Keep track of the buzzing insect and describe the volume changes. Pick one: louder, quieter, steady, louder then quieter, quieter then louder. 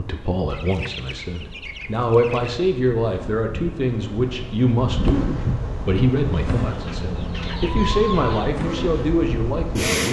louder.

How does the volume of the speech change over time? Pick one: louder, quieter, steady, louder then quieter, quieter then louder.
steady.